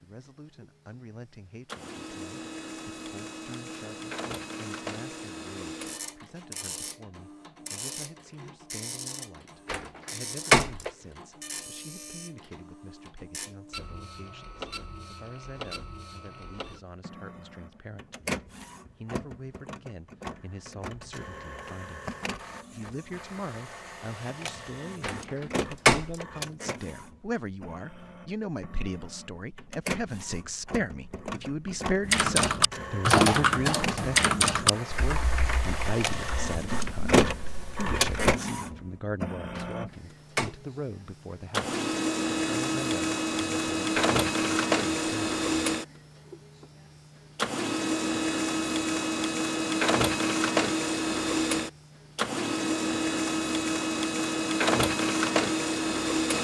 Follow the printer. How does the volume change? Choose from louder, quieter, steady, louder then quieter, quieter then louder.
louder.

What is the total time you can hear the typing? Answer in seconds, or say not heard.
6 s.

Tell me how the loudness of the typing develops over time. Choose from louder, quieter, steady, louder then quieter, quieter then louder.
quieter.